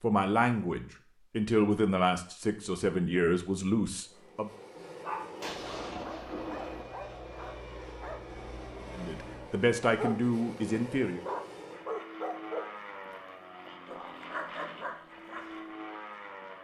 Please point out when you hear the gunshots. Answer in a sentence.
The gunshots can be heard from 5.4 to 6.8 s.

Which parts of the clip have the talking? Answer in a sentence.
The talking can be heard from 0.0 to 4.5 s and from 8.9 to 11.2 s.